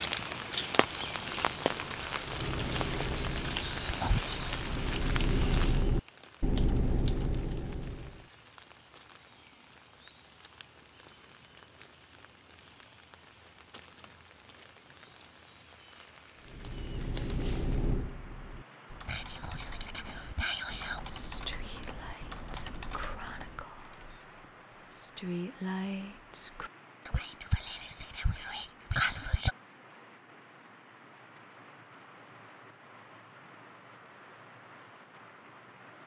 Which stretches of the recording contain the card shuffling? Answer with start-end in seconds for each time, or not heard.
not heard.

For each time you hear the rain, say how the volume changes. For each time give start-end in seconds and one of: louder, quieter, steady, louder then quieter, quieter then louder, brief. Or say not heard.
0.0-36.0 quieter.